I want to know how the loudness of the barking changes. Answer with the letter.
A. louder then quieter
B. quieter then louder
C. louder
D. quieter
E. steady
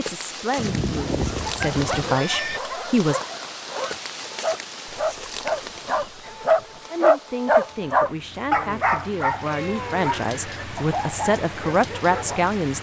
A.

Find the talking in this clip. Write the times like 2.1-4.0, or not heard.
0.0-3.2, 6.9-12.7.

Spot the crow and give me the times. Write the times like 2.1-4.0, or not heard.
not heard.